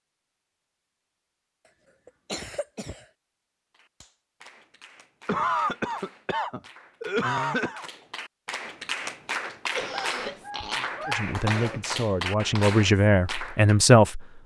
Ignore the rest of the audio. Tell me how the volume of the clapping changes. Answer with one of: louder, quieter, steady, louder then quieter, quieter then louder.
louder.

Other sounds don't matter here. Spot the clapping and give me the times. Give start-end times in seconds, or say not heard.
3.7-13.8.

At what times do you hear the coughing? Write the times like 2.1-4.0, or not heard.
2.0-3.0, 5.2-7.8, 9.7-11.9.